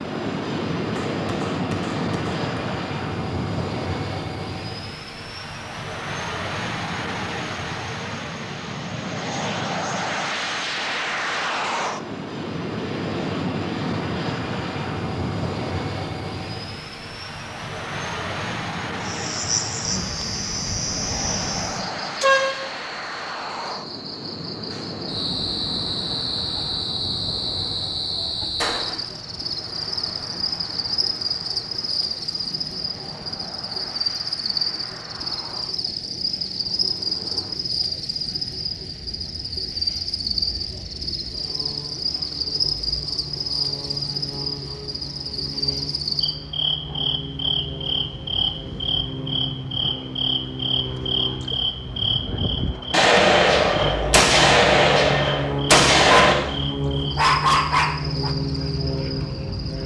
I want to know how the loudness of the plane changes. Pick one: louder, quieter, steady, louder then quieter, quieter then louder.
quieter then louder.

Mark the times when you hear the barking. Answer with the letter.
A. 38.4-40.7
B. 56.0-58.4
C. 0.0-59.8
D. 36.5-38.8
B.